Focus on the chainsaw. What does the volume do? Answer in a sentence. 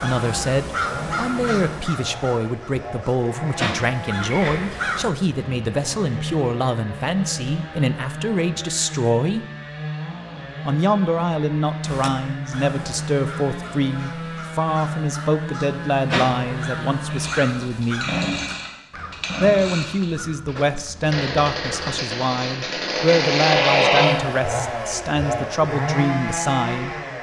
The loudness of the chainsaw goes up.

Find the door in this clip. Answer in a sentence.
You can hear the door from 4.2 to 4.8 s.